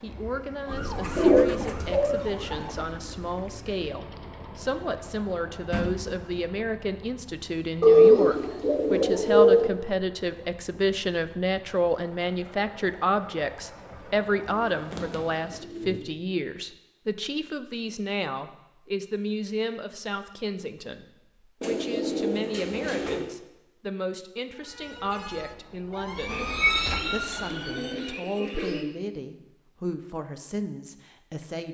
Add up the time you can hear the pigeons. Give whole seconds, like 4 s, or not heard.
9 s.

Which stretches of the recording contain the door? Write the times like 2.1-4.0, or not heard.
5.7-6.4.